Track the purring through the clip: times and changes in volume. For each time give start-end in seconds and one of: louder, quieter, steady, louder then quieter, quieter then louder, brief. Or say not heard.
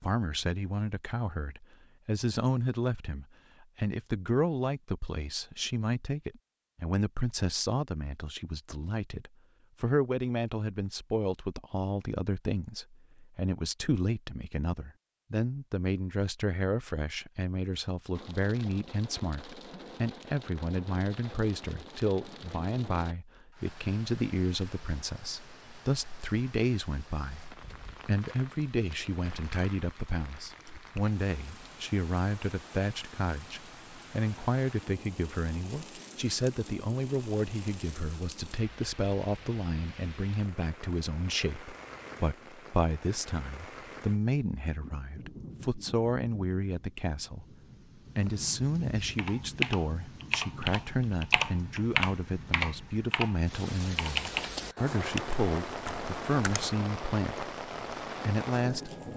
not heard.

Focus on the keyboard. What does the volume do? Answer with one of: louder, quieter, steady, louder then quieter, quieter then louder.
quieter.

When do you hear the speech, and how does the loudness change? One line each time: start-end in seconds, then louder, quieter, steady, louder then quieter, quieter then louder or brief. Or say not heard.
0.0-47.5 steady
48.1-59.1 steady.